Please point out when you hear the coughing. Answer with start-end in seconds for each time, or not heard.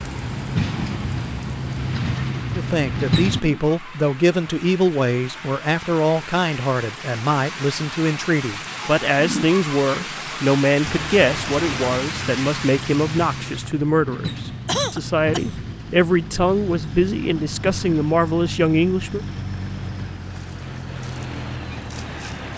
14.7-15.6.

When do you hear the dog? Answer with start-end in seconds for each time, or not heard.
not heard.